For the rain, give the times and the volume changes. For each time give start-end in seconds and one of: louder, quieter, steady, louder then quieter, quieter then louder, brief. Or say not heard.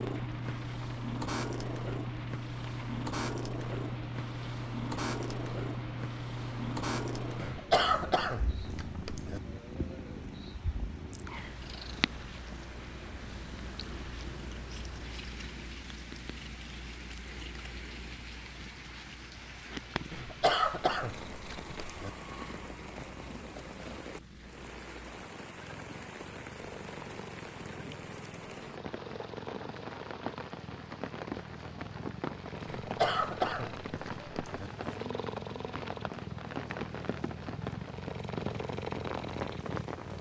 0.0-40.1 louder.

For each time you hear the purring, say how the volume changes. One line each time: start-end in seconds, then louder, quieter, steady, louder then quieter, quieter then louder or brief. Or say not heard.
0.0-40.1 quieter then louder.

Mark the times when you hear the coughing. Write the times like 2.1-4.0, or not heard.
7.3-9.4, 20.1-22.1, 32.6-34.7.